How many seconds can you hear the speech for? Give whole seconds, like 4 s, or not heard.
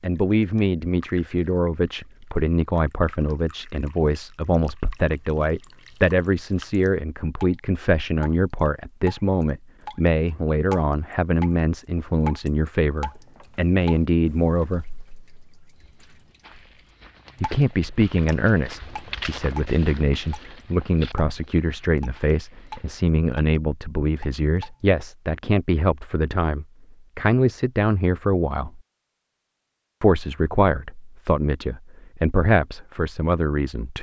30 s.